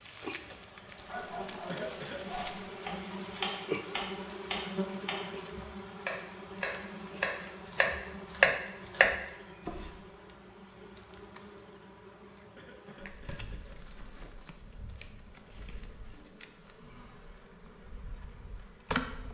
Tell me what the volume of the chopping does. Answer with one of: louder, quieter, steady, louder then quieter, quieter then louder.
louder.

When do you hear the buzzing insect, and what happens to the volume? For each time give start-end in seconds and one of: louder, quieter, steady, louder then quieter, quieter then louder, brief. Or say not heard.
0.0-19.2 quieter.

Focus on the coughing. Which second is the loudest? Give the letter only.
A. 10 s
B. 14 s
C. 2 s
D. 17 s
C.